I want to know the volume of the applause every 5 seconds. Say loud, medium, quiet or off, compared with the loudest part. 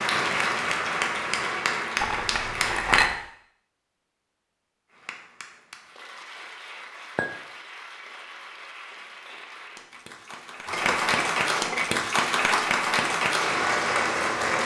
loud, quiet, loud.